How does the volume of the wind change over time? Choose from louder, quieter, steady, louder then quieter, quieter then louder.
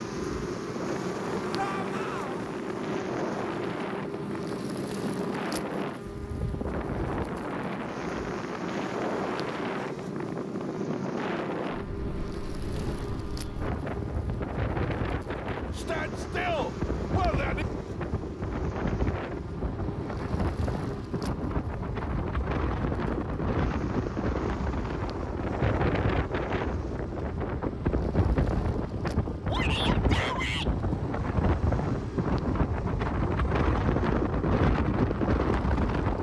louder.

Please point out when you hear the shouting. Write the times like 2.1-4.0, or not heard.
1.6-2.4, 15.8-17.6, 29.4-30.7.